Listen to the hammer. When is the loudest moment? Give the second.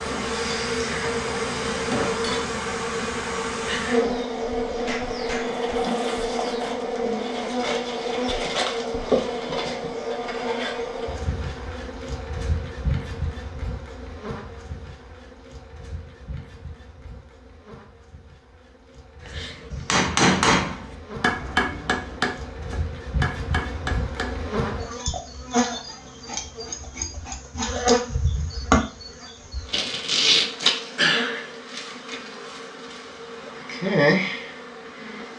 20 s.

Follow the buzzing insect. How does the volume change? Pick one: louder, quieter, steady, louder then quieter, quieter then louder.
quieter then louder.